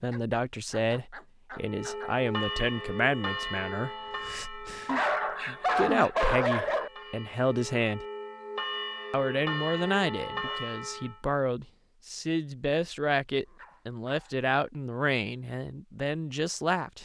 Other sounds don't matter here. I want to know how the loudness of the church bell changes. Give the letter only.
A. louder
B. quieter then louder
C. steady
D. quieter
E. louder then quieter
B.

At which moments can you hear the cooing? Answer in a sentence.
You can't hear the cooing here.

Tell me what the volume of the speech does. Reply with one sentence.
The volume of the speech stays about the same.